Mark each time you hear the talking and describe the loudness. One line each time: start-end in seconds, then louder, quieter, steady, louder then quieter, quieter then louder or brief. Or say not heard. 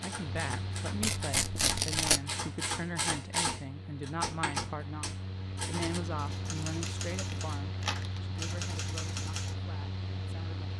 0.0-10.7 quieter.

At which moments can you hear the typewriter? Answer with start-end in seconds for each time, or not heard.
0.0-9.6.